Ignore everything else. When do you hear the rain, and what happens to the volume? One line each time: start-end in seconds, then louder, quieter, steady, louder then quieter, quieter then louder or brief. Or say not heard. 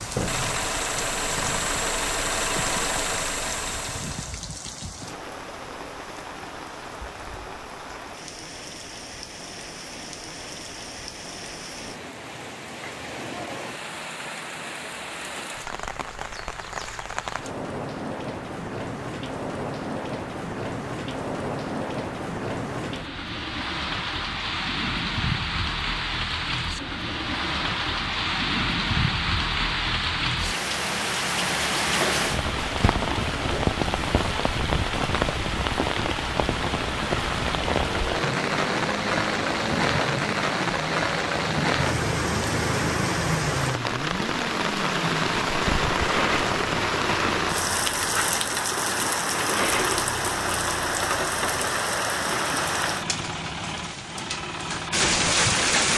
0.0-55.9 louder.